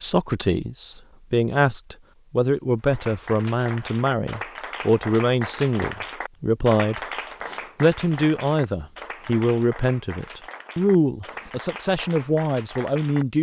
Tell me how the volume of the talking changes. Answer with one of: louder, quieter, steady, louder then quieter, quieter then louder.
steady.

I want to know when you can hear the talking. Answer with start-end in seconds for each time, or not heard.
0.0-7.0, 7.8-13.3.